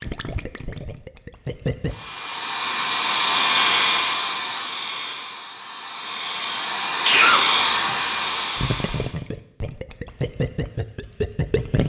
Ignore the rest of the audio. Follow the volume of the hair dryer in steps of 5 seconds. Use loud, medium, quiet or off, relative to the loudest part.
loud, loud, off.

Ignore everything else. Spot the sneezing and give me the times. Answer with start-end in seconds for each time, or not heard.
7.0-8.0.